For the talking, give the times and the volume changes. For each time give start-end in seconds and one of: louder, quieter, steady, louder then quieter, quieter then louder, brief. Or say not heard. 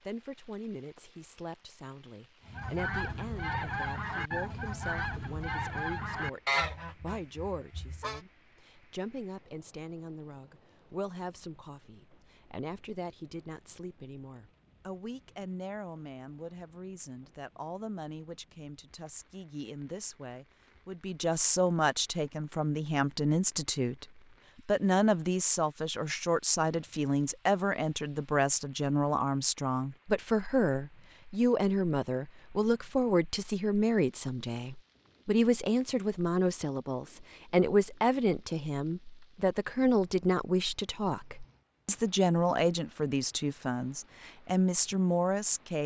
0.0-24.1 louder
24.6-45.8 steady.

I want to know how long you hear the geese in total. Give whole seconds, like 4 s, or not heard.
6 s.